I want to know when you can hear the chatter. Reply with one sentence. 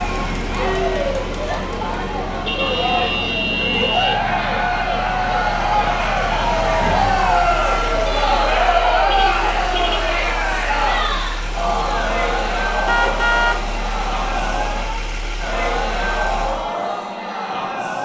The chatter can be heard from 0.0 to 18.0 s.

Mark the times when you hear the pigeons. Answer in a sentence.
You can't hear the pigeons here.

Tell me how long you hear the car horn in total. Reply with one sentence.
You can hear the car horn for 4 seconds altogether.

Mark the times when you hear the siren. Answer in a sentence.
The siren can be heard from 0.0 to 8.2 s.